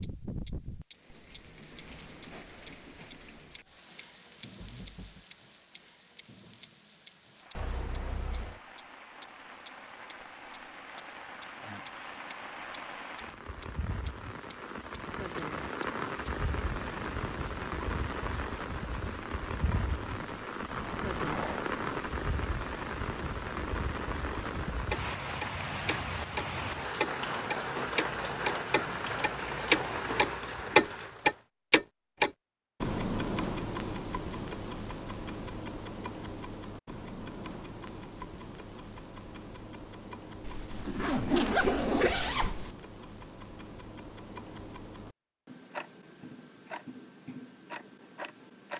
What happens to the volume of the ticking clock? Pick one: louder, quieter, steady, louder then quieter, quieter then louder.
louder then quieter.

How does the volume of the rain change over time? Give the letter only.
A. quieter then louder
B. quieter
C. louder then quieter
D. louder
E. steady
D.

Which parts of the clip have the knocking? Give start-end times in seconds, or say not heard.
4.6-5.2.